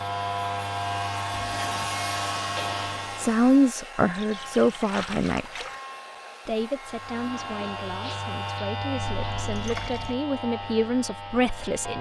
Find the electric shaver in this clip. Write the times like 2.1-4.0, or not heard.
0.0-3.4, 6.8-11.9.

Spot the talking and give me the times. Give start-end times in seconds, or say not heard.
3.1-5.7, 6.5-11.9.